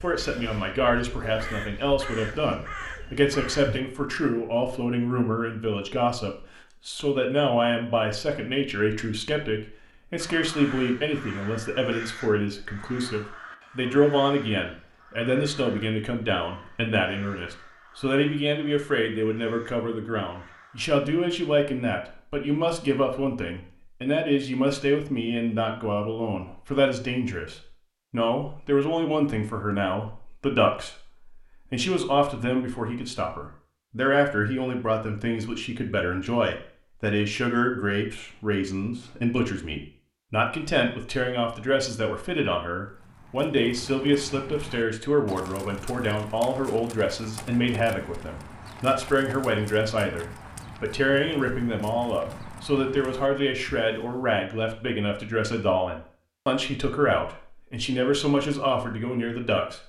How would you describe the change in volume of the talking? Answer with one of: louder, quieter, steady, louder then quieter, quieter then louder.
steady.